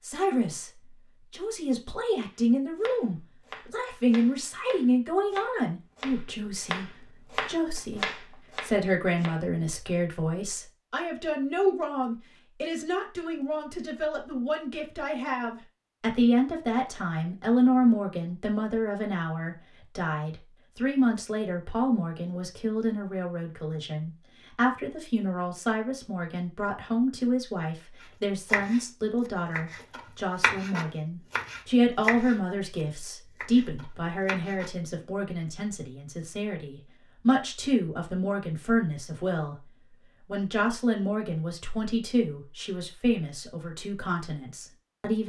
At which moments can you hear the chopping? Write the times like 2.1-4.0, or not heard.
2.3-9.4, 28.0-28.8, 29.6-32.4, 33.4-34.7.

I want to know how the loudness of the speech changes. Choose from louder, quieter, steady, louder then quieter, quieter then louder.
steady.